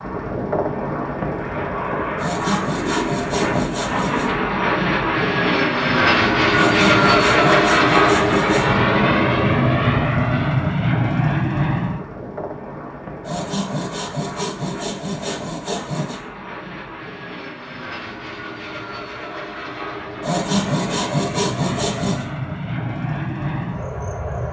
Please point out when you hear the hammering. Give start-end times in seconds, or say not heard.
not heard.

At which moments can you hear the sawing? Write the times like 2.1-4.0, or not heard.
2.1-4.3, 6.5-8.8, 13.2-16.2, 20.2-22.2.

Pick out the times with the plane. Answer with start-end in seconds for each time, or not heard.
0.0-24.4.